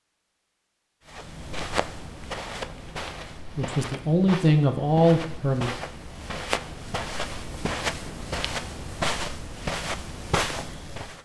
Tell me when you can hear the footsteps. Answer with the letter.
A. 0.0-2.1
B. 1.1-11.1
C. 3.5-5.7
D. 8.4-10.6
B.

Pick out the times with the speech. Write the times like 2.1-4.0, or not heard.
3.5-5.7.